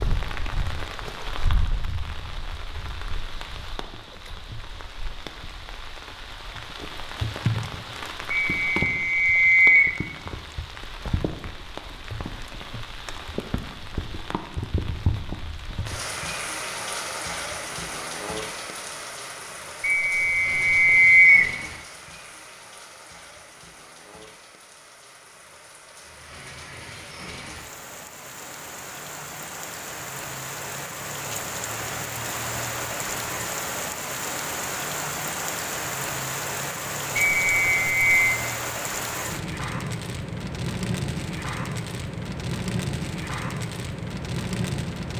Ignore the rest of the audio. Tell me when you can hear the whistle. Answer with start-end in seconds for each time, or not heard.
8.3-9.9, 19.8-21.5, 37.1-38.1.